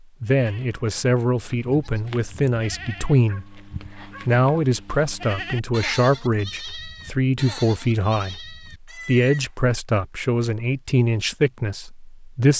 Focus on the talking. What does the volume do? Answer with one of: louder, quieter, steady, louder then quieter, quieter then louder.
steady.